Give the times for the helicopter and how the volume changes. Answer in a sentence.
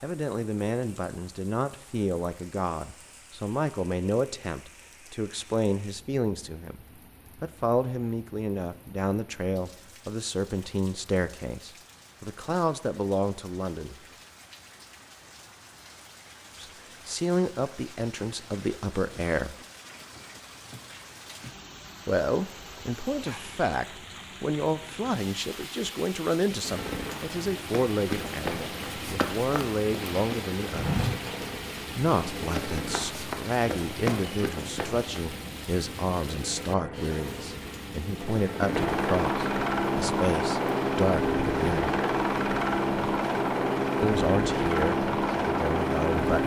The helicopter can be heard from 26.6 to 46.4 s, getting louder.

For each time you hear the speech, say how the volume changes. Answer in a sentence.
You can hear the speech from 0.0 to 13.9 s, at a steady volume; briefly from 16.6 to 19.6 s; from 22.1 to 31.0 s, at a steady volume; from 31.9 to 41.9 s, at a steady volume; and briefly from 44.0 to 46.4 s.